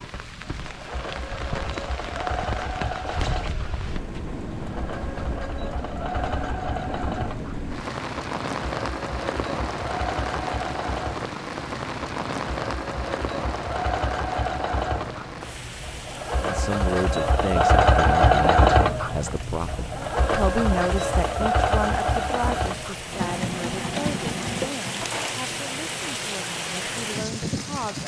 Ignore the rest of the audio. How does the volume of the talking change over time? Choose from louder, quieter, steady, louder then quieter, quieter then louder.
quieter.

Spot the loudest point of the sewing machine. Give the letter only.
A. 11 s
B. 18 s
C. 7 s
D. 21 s
B.